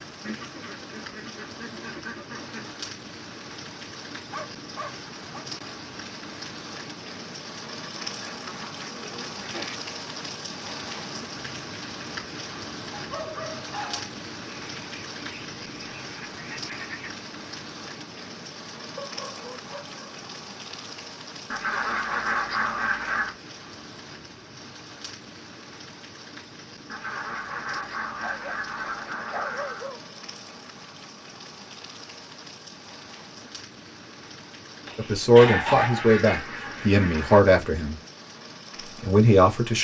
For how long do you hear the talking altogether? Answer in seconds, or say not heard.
4 s.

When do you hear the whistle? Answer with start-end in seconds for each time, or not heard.
not heard.